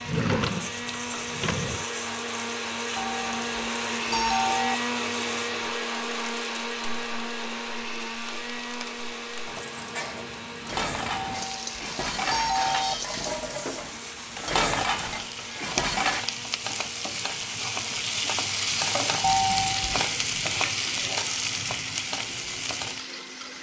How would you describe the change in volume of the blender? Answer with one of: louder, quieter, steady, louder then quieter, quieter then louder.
quieter.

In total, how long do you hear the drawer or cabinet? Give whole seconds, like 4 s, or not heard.
2 s.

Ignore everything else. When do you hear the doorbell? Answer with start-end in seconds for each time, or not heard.
3.0-4.8, 11.2-12.9, 19.2-20.0.